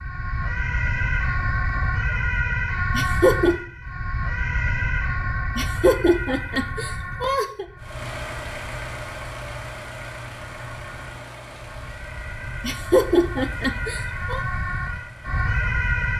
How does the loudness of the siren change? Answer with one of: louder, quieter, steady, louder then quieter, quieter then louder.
quieter then louder.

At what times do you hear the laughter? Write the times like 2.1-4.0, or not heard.
3.0-3.5, 5.5-7.7, 12.6-14.4.